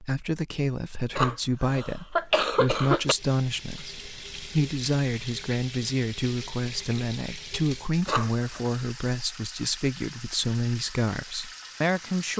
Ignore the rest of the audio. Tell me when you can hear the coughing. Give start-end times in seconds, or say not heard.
1.1-3.1, 8.1-8.6.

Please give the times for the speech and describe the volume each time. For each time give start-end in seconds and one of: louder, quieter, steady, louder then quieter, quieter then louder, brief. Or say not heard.
0.0-12.3 steady.